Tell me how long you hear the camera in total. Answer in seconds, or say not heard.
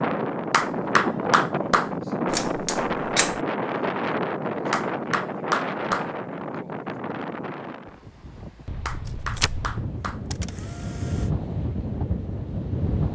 3 s.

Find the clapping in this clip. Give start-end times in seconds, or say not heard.
0.5-1.9, 4.7-6.1, 8.8-10.2.